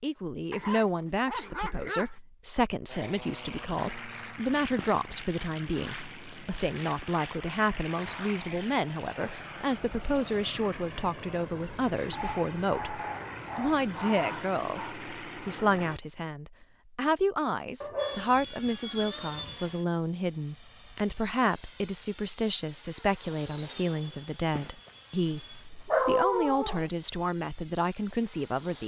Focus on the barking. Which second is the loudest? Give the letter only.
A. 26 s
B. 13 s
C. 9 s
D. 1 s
A.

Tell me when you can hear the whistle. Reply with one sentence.
You can't hear the whistle here.